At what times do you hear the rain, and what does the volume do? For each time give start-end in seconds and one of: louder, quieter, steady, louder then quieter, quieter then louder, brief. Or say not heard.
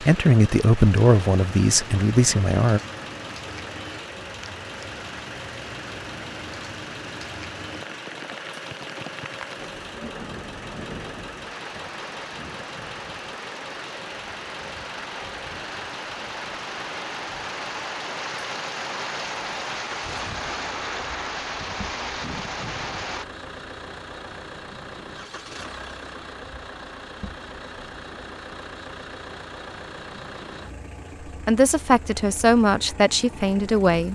0.0-23.2 louder.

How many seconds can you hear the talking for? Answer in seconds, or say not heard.
6 s.